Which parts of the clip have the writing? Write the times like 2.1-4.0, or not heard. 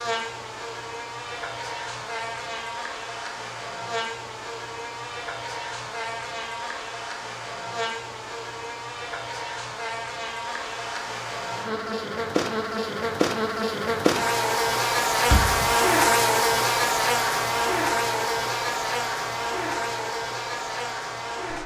not heard.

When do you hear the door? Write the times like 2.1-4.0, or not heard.
15.2-15.8.